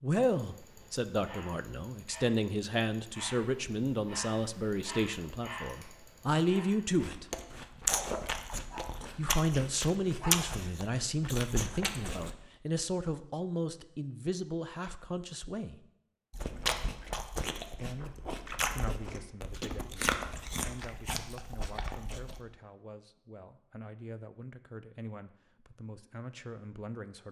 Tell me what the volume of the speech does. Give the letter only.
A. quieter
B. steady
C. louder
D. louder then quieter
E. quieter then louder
A.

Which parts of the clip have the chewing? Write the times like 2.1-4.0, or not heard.
7.0-12.3, 16.3-22.4.